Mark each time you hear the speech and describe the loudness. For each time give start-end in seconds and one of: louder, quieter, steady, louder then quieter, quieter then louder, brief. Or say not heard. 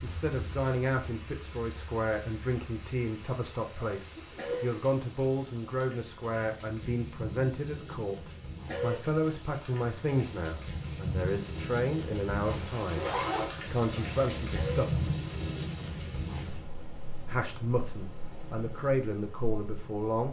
0.0-13.1 steady
13.7-14.8 brief
17.2-20.2 brief.